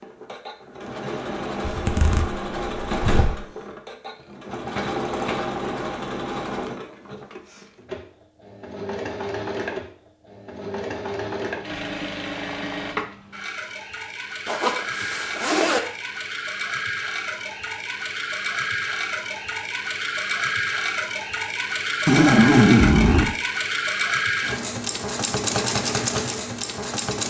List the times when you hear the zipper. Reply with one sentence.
The zipper can be heard from 1.6 to 3.4 s, from 14.4 to 15.8 s and from 22.1 to 23.3 s.